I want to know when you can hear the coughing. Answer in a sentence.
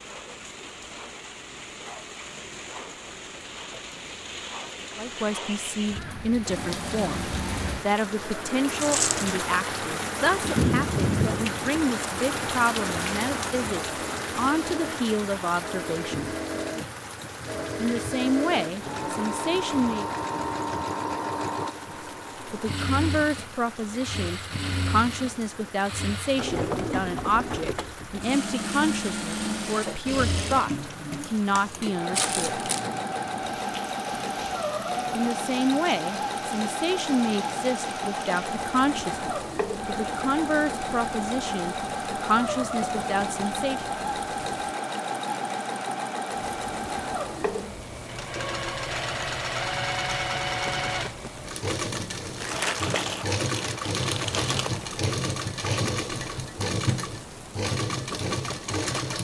The coughing can't be heard in this clip.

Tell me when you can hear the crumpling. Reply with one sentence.
You can hear the crumpling from 8.8 to 9.3 s, from 32.1 to 32.9 s and from 52.4 to 55.0 s.